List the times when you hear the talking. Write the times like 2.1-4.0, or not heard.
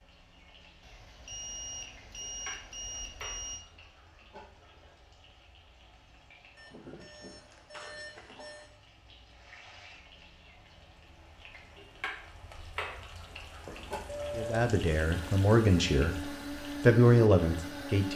14.3-18.1.